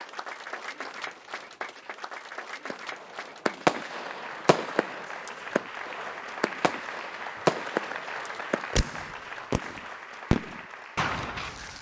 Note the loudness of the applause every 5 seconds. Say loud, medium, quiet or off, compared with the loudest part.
loud, loud, medium.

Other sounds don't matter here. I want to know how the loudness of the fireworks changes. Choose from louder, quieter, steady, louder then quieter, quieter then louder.
quieter then louder.